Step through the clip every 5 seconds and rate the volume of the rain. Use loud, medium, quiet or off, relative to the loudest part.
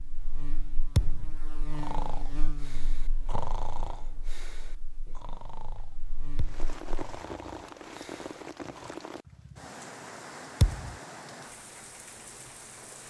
off, loud, loud.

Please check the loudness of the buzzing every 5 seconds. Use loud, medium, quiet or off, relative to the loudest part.
loud, medium, off.